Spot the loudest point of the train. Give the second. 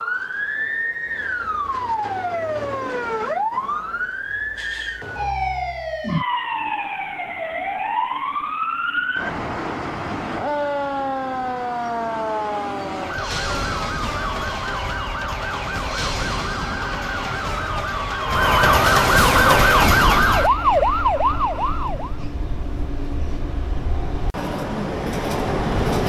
26 s.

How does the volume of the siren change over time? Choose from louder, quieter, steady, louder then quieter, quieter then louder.
louder.